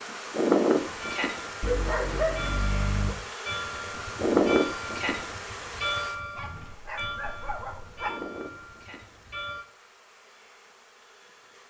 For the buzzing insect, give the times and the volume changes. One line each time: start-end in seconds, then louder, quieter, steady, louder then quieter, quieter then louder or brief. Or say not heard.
0.0-11.6 quieter.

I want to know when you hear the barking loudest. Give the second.
2 s.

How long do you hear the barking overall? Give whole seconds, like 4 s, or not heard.
3 s.